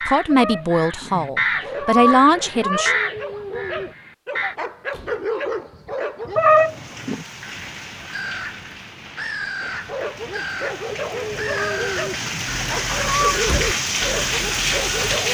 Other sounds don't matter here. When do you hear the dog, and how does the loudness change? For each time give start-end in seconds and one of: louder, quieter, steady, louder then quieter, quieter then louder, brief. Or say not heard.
1.6-6.4 louder
9.6-15.2 steady.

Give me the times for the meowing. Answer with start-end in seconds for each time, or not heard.
0.3-3.0, 6.3-7.2, 11.6-13.4.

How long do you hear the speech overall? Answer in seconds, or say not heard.
3 s.